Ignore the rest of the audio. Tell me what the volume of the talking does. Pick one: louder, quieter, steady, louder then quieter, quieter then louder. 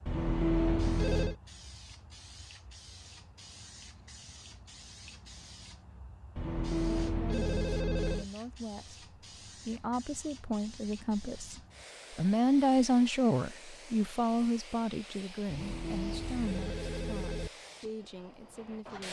louder then quieter.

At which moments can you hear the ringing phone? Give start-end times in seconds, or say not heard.
0.1-1.4, 6.3-8.2, 15.4-17.5.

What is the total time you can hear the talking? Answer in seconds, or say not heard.
12 s.